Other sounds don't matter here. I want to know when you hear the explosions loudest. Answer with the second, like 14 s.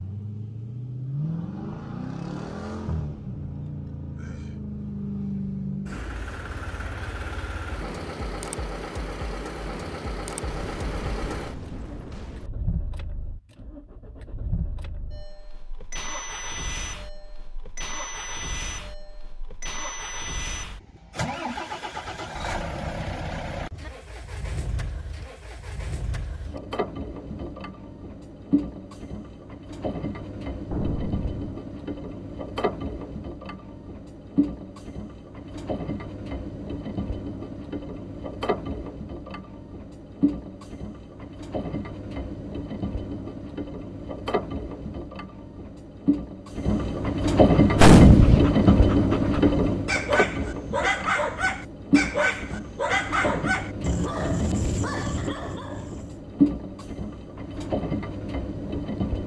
48 s.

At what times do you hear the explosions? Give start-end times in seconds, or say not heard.
10.4-12.5, 30.7-31.6, 47.8-48.5.